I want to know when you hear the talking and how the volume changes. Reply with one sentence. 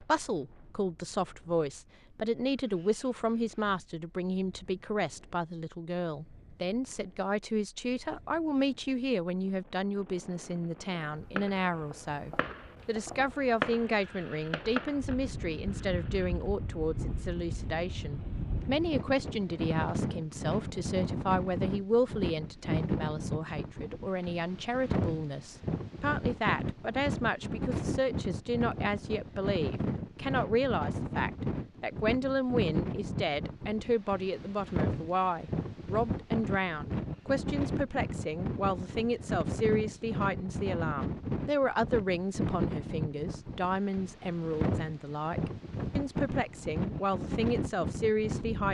The talking can be heard from 0.0 to 48.6 s, at a steady volume.